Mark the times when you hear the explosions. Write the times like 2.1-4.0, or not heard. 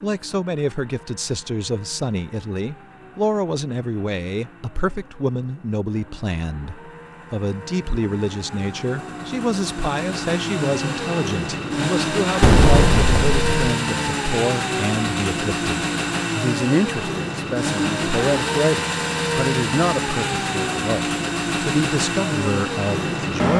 12.4-13.6.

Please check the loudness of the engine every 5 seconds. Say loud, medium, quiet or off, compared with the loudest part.
quiet, quiet, loud, loud, loud.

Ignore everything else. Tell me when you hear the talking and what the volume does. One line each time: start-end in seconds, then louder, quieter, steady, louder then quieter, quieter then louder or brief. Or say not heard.
0.0-23.5 steady.